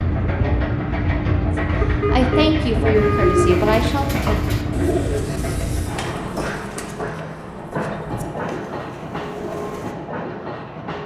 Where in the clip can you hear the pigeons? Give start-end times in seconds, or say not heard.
3.0-9.9.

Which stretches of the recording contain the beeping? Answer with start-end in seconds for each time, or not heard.
1.8-3.6.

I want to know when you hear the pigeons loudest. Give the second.
3 s.